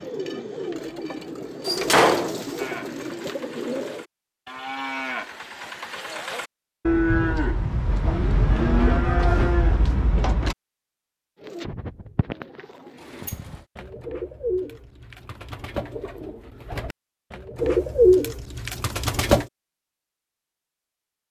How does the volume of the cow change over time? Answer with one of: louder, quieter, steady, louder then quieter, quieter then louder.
louder.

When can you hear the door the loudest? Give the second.
2 s.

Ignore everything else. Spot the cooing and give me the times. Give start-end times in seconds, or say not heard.
0.0-4.0, 11.4-19.4.